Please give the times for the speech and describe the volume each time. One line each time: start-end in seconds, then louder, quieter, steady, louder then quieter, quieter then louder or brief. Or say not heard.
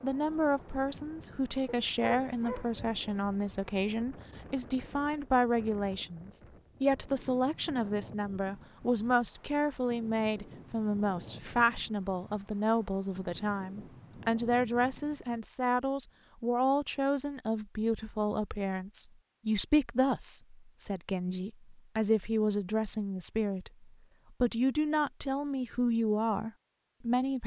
0.0-27.4 steady.